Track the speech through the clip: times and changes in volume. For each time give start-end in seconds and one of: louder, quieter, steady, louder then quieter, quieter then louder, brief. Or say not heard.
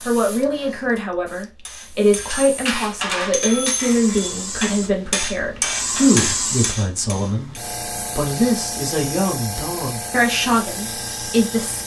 0.0-11.8 steady.